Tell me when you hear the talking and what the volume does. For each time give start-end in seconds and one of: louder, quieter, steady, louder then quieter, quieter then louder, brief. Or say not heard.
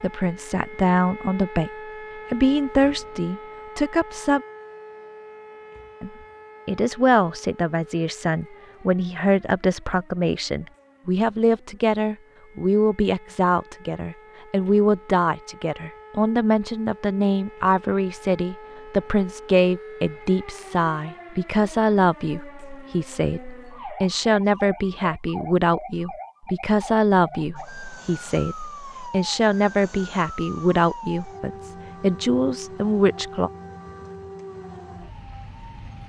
0.0-1.7 brief
2.3-4.4 brief
6.0-33.5 steady.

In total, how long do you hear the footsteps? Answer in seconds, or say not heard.
not heard.